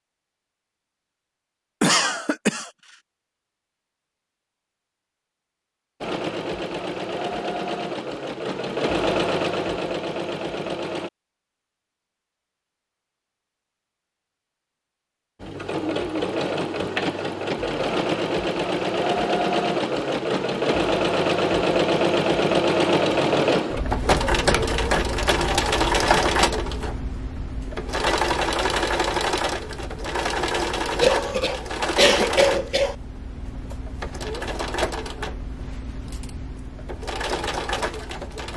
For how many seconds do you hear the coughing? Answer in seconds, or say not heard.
3 s.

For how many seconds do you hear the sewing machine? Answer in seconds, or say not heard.
28 s.